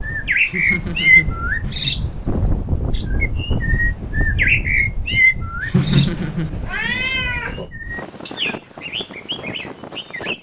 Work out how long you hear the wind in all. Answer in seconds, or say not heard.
10 s.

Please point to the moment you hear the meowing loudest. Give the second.
6 s.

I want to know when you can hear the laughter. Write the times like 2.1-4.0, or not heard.
0.4-1.9, 5.6-7.1.